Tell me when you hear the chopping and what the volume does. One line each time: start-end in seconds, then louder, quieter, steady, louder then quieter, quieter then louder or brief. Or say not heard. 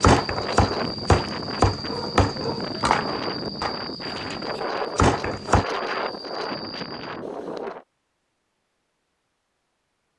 0.0-5.7 quieter then louder.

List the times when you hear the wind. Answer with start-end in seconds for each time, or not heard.
0.0-7.8.